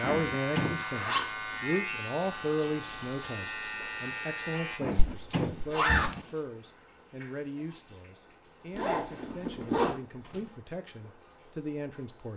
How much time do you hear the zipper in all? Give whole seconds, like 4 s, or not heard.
3 s.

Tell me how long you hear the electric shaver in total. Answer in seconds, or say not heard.
5 s.